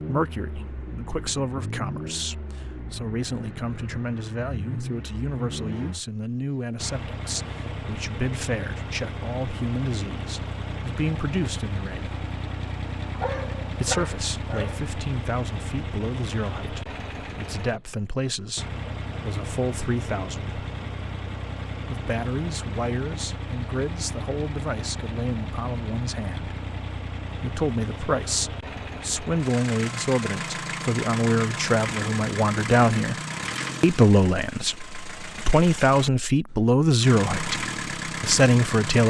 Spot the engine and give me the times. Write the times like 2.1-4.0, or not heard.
0.0-39.0.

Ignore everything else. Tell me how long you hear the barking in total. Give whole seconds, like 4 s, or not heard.
2 s.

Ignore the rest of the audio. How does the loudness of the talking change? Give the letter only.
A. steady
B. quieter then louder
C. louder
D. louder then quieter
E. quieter
C.